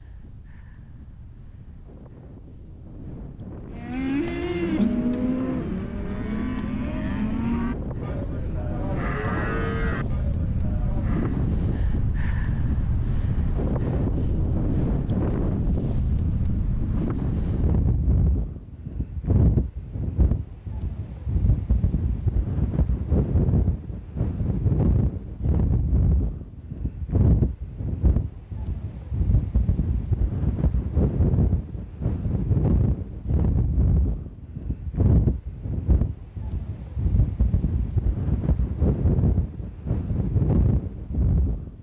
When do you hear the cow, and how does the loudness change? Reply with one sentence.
The cow can be heard from 3.8 to 11.4 s, getting quieter.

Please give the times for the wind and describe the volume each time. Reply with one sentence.
The wind can be heard from 0.0 to 41.7 s, getting louder.